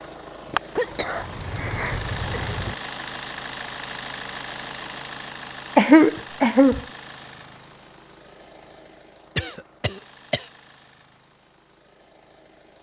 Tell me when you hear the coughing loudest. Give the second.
6 s.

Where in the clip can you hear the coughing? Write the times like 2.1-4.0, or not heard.
0.8-2.8, 5.8-6.8, 9.3-10.5.